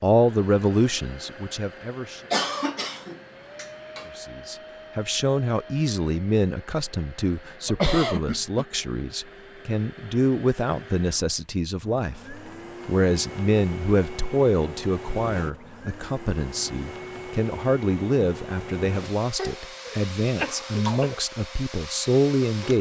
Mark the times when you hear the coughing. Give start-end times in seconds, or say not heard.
2.3-4.1, 7.7-8.7, 19.4-21.2.